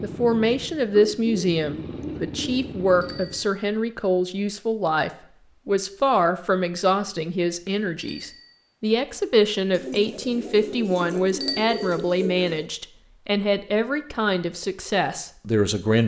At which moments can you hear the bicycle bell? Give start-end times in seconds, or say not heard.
3.0-3.5, 8.0-8.5, 11.4-11.9.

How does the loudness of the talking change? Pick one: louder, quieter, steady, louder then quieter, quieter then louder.
steady.